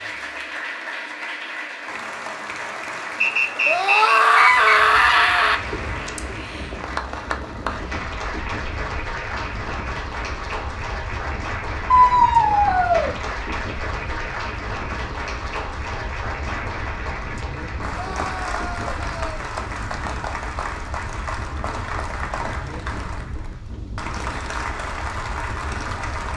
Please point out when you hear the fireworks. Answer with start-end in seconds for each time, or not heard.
not heard.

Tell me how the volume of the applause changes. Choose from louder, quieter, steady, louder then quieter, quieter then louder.
steady.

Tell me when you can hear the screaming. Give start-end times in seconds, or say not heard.
3.6-5.5, 11.9-13.2, 17.9-19.4.